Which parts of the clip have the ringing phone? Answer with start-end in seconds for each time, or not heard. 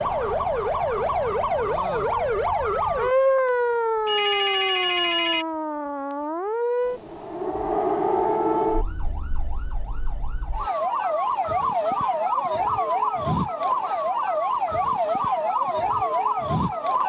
4.0-5.5.